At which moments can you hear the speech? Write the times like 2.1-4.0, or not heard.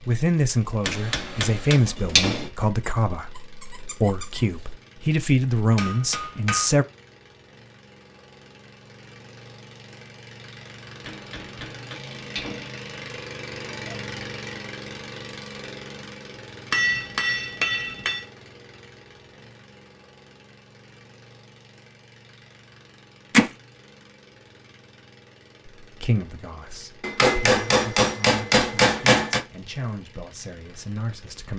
0.0-6.8, 25.8-31.5.